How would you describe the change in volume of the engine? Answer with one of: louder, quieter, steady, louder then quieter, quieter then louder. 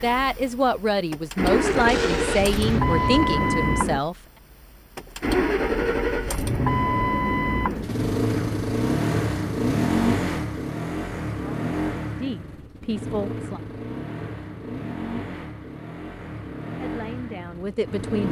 quieter.